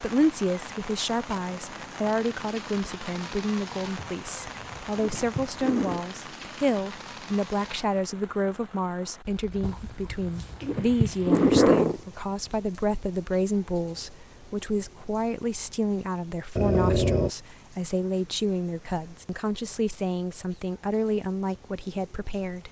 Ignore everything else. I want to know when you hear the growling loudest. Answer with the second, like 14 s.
12 s.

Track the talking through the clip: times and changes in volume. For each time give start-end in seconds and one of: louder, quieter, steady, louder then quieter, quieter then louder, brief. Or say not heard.
0.0-22.6 steady.